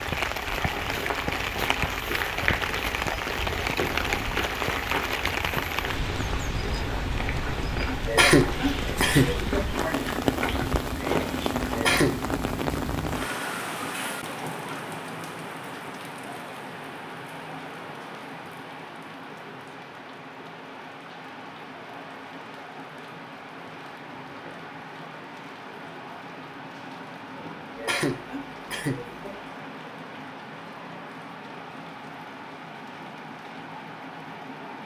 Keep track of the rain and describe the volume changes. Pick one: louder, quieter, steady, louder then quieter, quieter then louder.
quieter.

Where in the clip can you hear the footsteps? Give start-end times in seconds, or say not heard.
0.7-11.8.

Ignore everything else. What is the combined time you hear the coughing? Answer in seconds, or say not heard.
4 s.